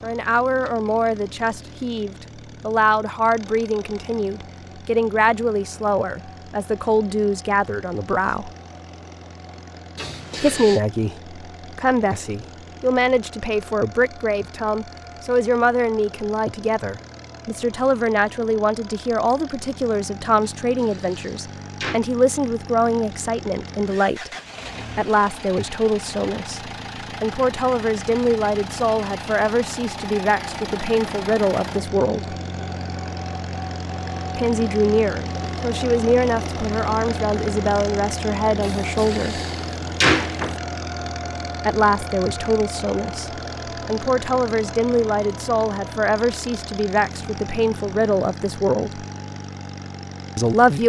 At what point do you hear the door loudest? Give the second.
40 s.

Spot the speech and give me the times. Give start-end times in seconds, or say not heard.
0.0-8.5, 10.4-24.3, 24.9-32.4, 34.4-39.4, 41.6-49.0, 50.4-50.8.